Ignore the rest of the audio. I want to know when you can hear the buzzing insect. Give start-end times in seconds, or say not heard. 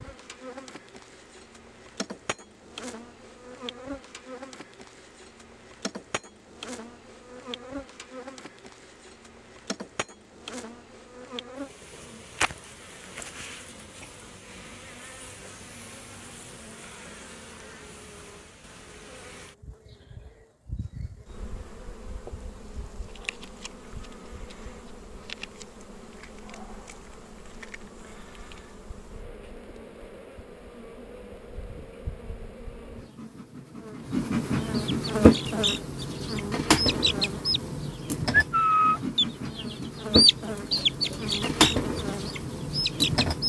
0.0-43.4.